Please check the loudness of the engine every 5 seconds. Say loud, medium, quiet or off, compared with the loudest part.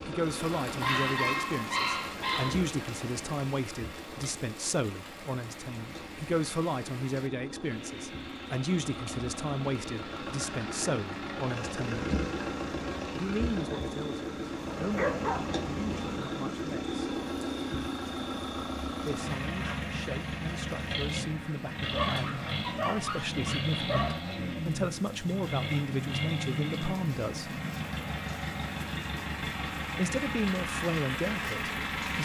medium, medium, loud, loud, loud, loud, loud.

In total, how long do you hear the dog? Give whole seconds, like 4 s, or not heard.
5 s.